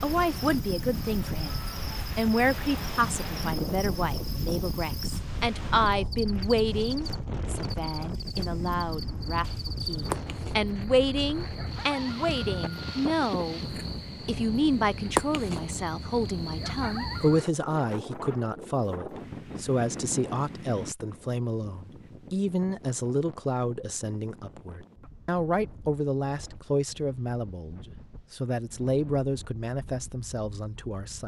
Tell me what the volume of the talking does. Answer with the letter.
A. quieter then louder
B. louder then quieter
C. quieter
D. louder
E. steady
E.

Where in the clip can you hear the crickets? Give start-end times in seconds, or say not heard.
0.0-17.5.